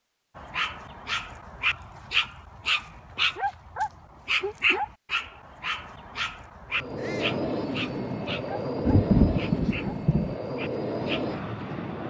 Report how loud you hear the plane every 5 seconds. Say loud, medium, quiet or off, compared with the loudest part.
off, loud, loud.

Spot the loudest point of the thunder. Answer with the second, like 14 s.
9 s.